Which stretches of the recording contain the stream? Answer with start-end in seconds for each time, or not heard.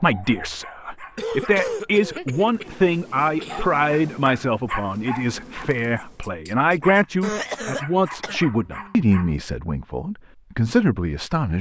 not heard.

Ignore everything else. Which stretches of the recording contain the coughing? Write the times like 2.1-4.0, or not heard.
1.1-3.7, 7.2-8.4.